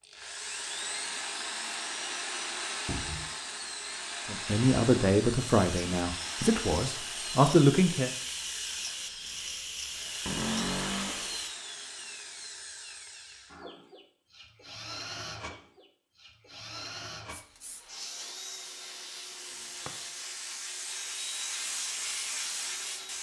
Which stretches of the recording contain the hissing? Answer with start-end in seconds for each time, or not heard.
5.3-11.6, 17.2-23.1.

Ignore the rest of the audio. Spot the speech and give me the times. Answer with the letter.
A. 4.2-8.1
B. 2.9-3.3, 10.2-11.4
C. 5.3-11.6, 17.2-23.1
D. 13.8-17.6
A.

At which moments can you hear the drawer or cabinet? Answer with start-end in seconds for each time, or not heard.
2.9-3.3, 10.2-11.4.